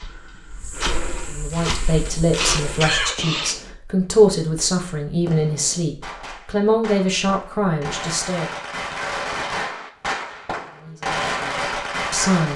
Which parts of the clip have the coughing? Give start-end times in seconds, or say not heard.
2.4-3.6.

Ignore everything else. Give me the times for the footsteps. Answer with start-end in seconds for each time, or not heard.
0.0-3.1.